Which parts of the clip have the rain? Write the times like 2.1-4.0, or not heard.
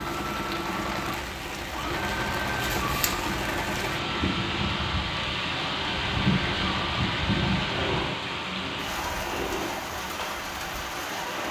0.0-11.4.